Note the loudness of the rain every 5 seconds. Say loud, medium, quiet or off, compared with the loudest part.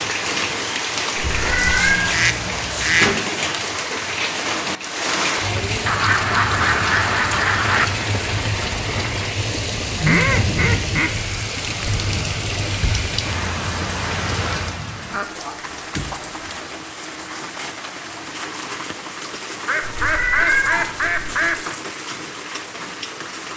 loud, loud, loud, medium, medium.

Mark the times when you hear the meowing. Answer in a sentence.
The meowing can be heard from 1.4 to 2.1 s and from 19.8 to 21.5 s.